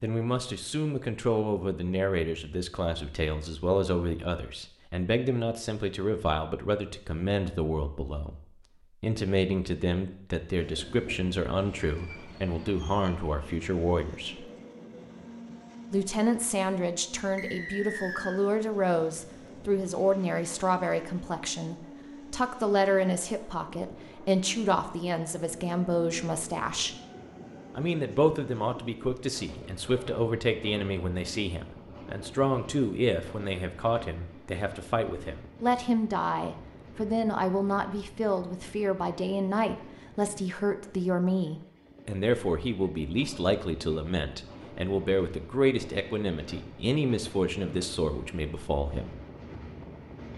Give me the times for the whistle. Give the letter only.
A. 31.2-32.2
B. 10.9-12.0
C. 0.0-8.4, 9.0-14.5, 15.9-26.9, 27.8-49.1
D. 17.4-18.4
D.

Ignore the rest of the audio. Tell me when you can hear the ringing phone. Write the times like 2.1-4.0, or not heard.
not heard.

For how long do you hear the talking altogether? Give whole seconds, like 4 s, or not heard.
46 s.